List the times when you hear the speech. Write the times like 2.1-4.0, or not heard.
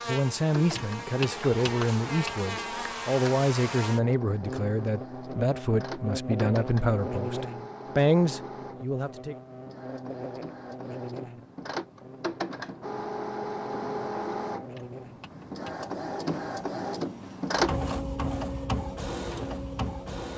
0.1-9.3.